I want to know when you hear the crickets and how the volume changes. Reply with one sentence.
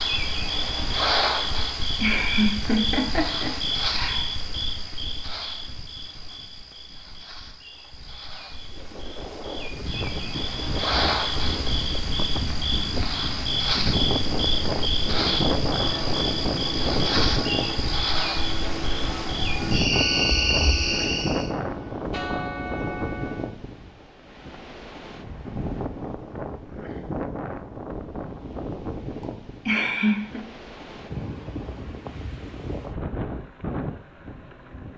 The crickets can be heard from 0.0 to 21.5 s, getting quieter then louder.